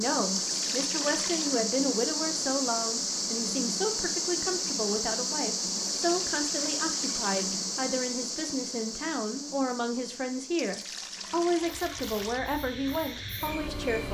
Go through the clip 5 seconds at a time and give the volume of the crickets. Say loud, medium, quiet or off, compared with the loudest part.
loud, loud, medium.